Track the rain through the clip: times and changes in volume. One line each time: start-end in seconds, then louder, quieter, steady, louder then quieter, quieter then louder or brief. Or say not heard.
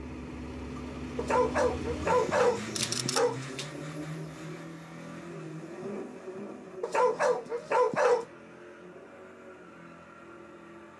not heard.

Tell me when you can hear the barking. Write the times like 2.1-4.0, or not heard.
1.1-3.6, 6.8-8.2.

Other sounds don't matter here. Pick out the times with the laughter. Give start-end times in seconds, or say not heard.
not heard.